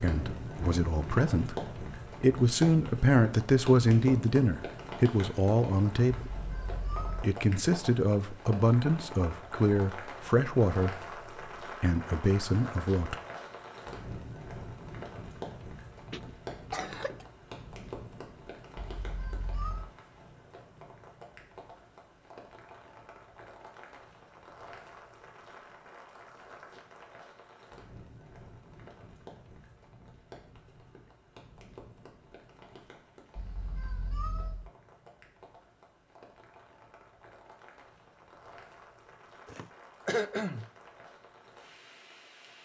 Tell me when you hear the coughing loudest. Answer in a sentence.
The volume of the coughing peaks at 40 seconds.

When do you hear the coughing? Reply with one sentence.
You can hear the coughing from 16.1 to 17.2 s and from 39.5 to 40.7 s.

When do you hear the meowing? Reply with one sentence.
You can hear the meowing from 6.3 to 7.2 s, from 18.8 to 19.9 s and from 33.4 to 34.7 s.